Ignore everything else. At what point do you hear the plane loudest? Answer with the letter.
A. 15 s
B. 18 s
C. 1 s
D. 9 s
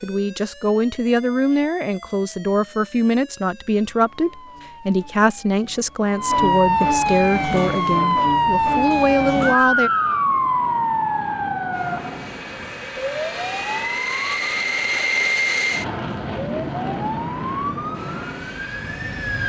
A.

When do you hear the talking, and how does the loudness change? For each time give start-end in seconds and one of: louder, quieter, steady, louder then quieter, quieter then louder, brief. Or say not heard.
0.0-9.9 steady.